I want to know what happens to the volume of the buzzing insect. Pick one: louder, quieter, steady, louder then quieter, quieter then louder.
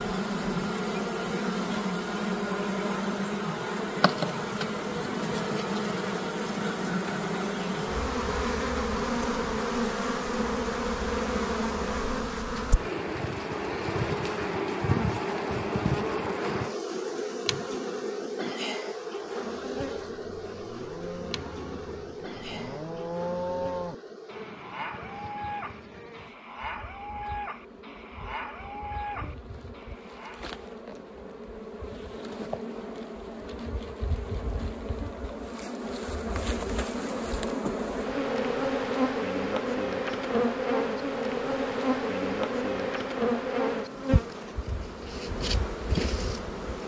quieter then louder.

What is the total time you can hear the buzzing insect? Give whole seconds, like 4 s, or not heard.
47 s.